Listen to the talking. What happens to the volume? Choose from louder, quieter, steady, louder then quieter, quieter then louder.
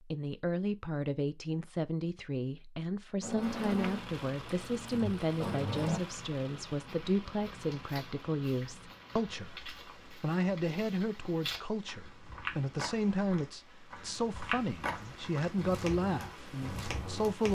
steady.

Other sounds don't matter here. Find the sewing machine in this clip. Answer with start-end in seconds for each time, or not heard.
3.2-6.0.